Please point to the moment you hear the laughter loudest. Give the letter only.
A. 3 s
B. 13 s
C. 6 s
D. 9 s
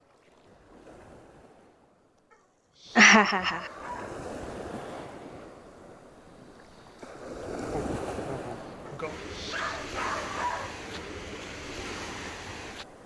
A.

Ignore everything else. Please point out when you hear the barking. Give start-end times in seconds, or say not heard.
2.3-4.2, 8.8-10.8.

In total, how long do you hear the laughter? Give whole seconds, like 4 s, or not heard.
2 s.